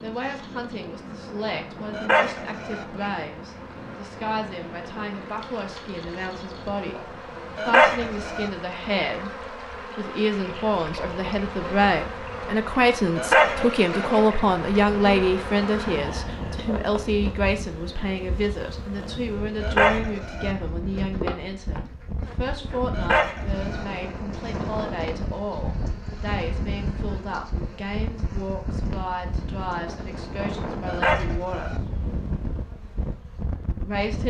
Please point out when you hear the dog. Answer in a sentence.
The dog can be heard from 1.9 to 2.9 s, from 7.5 to 8.5 s, from 13.2 to 14.1 s, from 19.6 to 20.6 s, from 22.9 to 23.9 s and from 30.9 to 31.8 s.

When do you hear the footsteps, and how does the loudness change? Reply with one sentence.
The footsteps can't be heard in this clip.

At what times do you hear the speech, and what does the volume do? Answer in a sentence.
The speech can be heard from 0.0 to 31.8 s, getting louder then quieter; and briefly from 33.8 to 34.2 s.